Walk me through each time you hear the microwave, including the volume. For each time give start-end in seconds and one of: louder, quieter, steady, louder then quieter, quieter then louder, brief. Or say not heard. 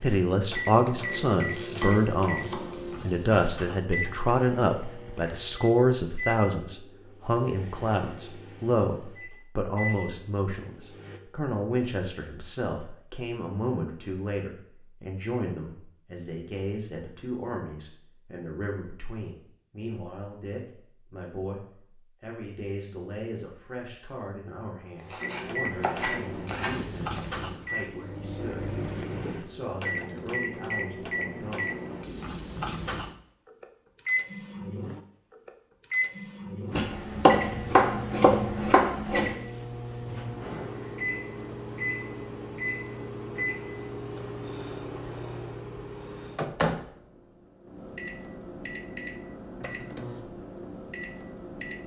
0.0-11.2 quieter then louder
25.2-51.8 steady.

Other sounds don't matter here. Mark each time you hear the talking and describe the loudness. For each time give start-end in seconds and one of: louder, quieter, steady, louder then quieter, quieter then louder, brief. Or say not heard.
0.0-31.6 quieter.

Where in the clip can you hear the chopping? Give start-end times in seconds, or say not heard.
1.0-3.0, 24.9-27.2, 36.8-39.4.